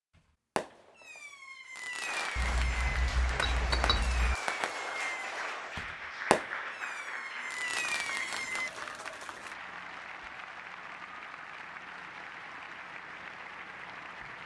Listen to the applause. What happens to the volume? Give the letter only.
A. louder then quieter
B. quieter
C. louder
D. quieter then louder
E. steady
B.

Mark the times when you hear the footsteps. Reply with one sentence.
You can't hear the footsteps here.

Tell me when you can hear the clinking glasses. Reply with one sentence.
The clinking glasses can be heard from 2.4 to 4.3 s.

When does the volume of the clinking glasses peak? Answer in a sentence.
The volume of the clinking glasses peaks at 4 seconds.